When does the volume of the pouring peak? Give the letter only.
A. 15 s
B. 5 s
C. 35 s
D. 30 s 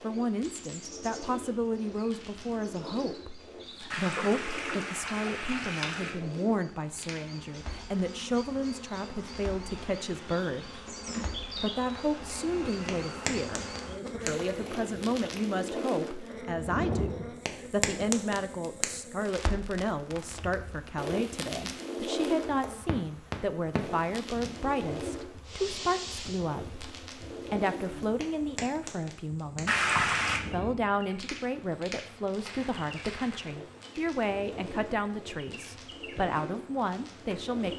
D.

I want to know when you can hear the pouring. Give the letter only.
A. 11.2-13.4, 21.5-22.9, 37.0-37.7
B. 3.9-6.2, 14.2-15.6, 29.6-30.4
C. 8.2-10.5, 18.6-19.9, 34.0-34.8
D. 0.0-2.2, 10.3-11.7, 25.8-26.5
B.